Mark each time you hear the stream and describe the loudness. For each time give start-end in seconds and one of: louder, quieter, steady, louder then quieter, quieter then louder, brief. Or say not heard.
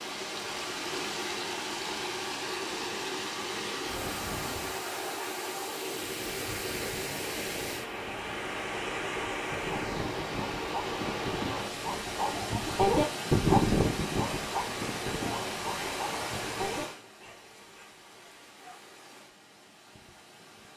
0.0-20.7 quieter.